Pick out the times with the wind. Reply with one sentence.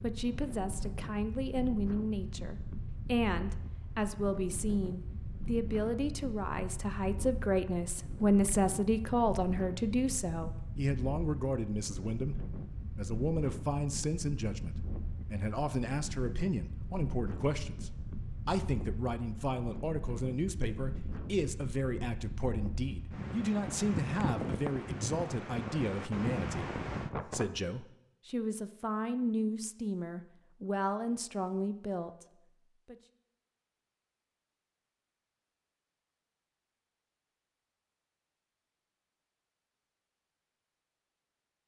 The wind can be heard from 0.0 to 27.4 s.